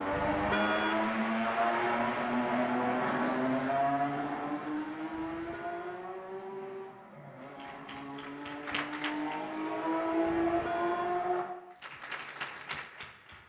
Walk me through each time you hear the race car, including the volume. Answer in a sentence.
You can hear the race car from 0.0 to 11.4 s, getting quieter then louder.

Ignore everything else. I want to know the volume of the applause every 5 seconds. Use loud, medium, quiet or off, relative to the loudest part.
off, loud, loud.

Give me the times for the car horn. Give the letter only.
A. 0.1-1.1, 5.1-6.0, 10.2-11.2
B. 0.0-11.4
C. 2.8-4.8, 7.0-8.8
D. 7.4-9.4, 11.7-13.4
A.